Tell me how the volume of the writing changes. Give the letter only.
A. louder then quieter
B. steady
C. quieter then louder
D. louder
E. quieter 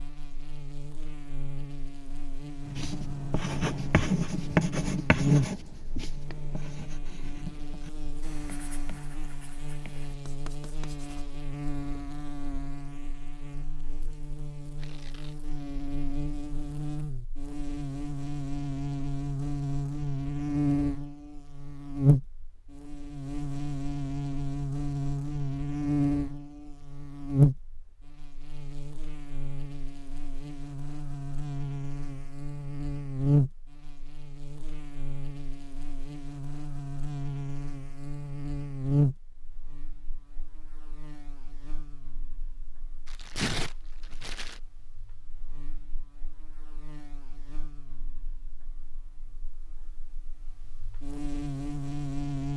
E.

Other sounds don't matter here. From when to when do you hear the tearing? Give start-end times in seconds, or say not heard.
14.8-15.3, 43.0-44.6.